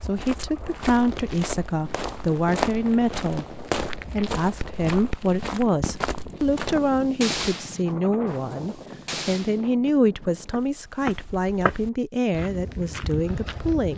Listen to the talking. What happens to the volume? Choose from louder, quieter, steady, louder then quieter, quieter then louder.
steady.